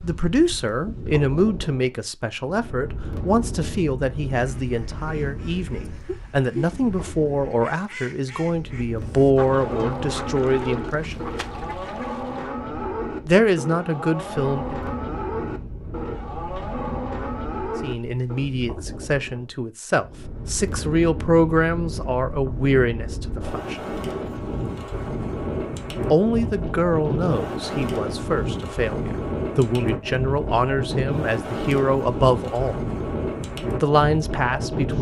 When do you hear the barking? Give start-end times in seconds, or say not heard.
not heard.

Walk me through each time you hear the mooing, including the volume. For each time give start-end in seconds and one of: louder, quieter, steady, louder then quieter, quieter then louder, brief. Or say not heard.
9.4-18.5 steady.